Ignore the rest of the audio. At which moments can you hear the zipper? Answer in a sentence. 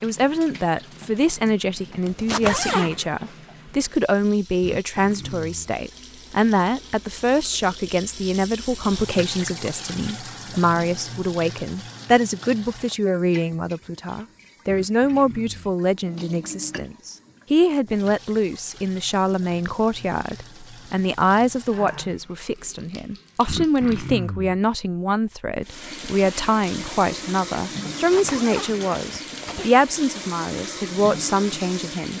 The zipper can be heard from 2.0 to 3.0 s and from 27.9 to 29.7 s.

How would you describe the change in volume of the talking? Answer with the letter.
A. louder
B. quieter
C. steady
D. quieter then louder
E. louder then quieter
C.